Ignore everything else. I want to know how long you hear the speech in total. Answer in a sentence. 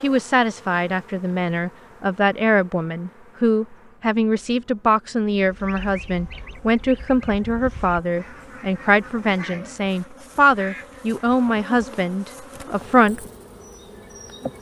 You can hear the speech for 13 seconds altogether.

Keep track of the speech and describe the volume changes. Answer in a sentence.
The loudness of the speech stays about the same.